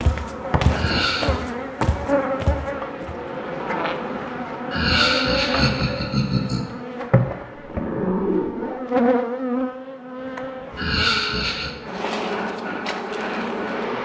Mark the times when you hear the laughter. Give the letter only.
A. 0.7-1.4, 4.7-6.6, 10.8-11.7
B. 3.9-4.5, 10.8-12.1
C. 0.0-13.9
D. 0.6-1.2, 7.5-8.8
A.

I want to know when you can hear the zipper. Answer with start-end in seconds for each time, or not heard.
0.6-1.2, 7.5-8.8.